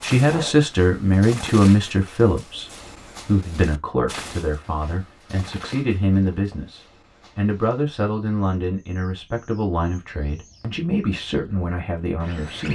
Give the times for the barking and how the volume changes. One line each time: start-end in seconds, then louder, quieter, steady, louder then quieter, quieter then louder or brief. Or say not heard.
not heard.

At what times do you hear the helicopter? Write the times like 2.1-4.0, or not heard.
not heard.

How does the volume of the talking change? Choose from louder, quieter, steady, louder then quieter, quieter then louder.
quieter.